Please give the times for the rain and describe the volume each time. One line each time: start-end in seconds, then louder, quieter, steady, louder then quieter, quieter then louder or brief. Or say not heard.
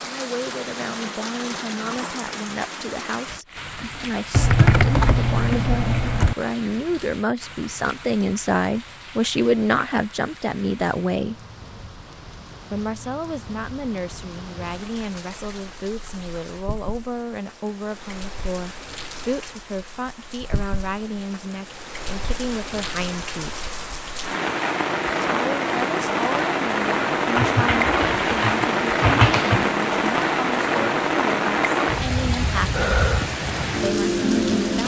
0.0-34.8 quieter then louder.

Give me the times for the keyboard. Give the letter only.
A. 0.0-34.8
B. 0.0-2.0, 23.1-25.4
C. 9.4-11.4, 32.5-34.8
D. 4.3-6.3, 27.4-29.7
D.